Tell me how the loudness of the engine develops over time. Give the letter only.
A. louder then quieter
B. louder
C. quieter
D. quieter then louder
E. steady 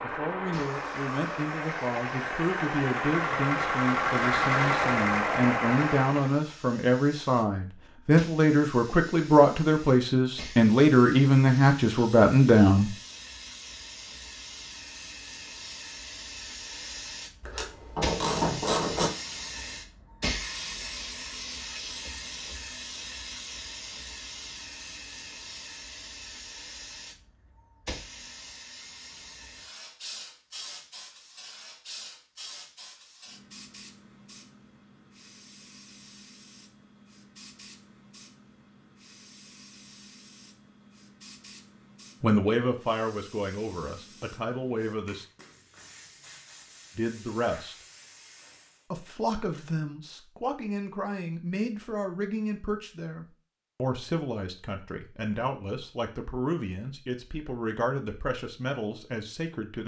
B.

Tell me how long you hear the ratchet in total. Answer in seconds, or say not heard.
2 s.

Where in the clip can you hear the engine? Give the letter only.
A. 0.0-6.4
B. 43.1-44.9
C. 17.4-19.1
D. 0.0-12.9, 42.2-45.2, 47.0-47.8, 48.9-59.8
A.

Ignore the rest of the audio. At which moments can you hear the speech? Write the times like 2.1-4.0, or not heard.
0.0-12.9, 42.2-45.2, 47.0-47.8, 48.9-59.8.